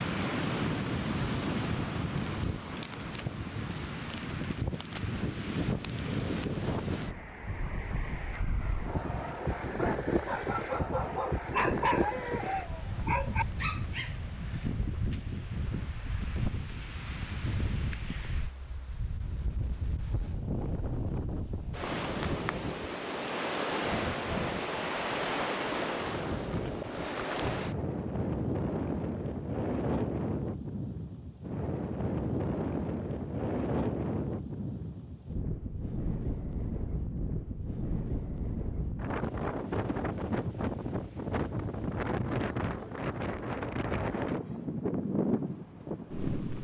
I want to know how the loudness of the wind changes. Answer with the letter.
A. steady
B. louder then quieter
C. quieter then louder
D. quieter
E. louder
A.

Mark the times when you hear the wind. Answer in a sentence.
The wind can be heard from 0.0 to 46.6 s.